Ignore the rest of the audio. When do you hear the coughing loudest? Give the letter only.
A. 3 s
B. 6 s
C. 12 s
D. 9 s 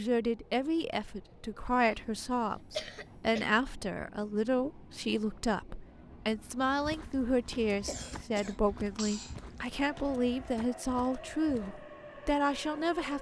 A.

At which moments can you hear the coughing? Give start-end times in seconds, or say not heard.
2.6-3.5, 7.8-9.4.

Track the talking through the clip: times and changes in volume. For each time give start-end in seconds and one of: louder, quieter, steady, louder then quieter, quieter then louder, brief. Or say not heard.
0.0-13.1 steady.